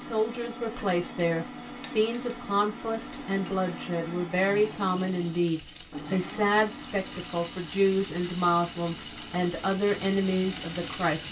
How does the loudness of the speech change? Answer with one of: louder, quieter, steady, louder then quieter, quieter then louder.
steady.